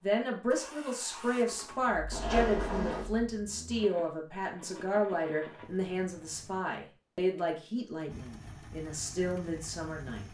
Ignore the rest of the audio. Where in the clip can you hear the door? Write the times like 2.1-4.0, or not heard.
2.1-3.1.